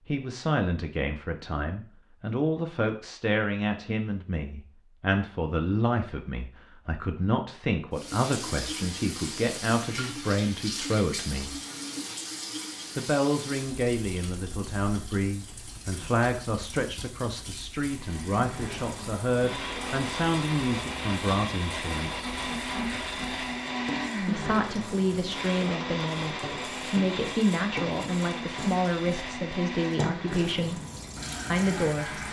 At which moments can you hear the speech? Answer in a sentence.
The speech can be heard from 0.1 to 11.6 s, from 12.9 to 22.3 s, from 24.2 to 30.8 s and from 31.5 to 32.2 s.